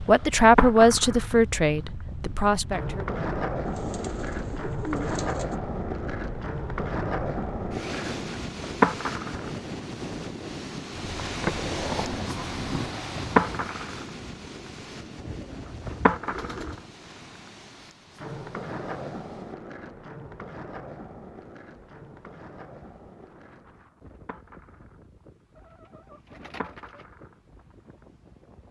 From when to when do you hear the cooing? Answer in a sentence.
The cooing can be heard from 3.6 to 5.5 s, from 15.2 to 16.9 s and from 25.6 to 27.1 s.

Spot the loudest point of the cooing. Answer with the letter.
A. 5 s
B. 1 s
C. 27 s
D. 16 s
A.